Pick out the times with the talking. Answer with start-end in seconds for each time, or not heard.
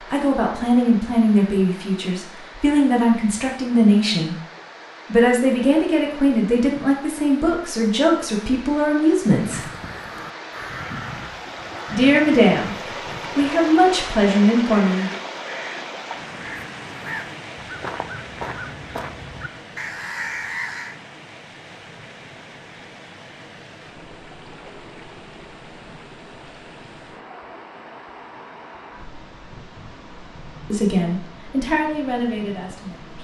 0.1-4.3, 5.1-9.7, 11.9-15.2, 30.7-33.2.